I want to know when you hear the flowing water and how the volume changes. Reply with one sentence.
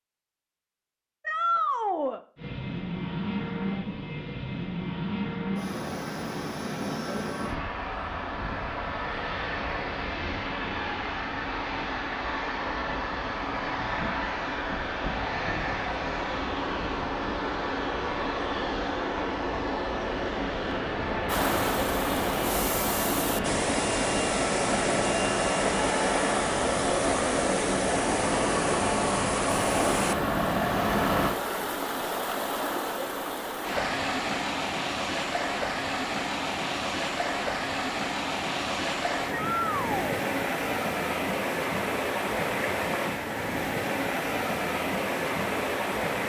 You can hear the flowing water from 21.2 to 46.2 s, at a steady volume.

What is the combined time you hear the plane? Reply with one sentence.
The plane can be heard for 29 seconds in total.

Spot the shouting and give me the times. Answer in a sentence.
The shouting can be heard from 1.2 to 2.2 s and from 39.3 to 40.0 s.